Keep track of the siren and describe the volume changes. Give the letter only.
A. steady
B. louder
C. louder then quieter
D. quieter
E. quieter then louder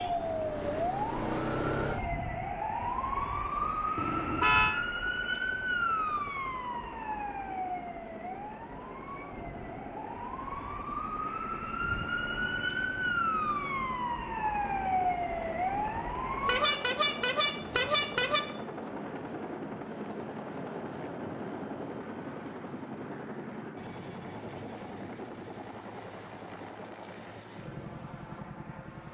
E.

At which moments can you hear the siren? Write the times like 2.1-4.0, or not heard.
0.0-16.8.